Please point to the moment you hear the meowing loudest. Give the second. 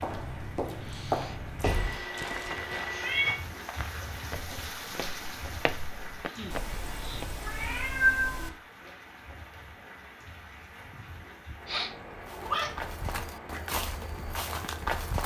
8 s.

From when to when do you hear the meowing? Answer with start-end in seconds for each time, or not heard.
1.6-3.4, 6.5-8.5, 12.2-12.8.